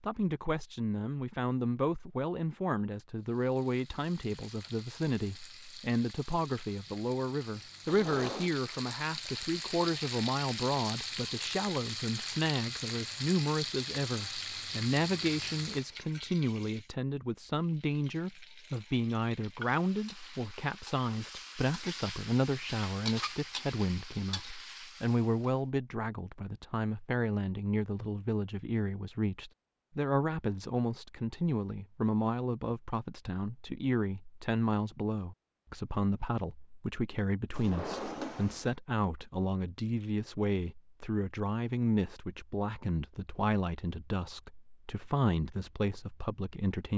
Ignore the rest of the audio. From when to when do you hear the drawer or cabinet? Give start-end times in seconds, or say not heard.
7.8-8.6, 37.5-38.8.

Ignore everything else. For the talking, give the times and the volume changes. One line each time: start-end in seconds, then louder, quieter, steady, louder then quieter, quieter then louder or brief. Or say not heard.
0.0-46.9 steady.